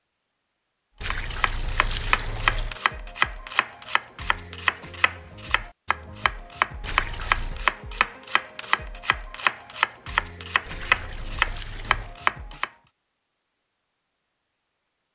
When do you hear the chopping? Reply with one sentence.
The chopping can be heard from 1.1 to 12.7 s.